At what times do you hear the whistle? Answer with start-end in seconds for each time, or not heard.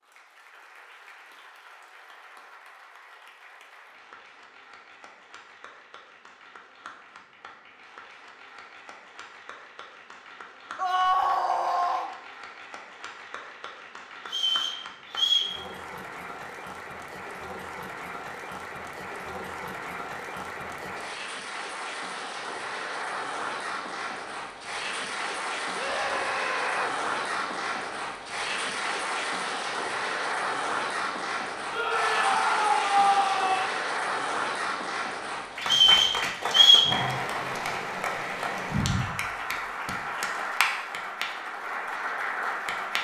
14.2-15.5, 35.6-36.9.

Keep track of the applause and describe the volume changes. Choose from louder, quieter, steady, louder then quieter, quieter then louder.
louder.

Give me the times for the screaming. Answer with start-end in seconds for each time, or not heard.
10.8-12.1, 25.8-26.9, 31.7-33.7.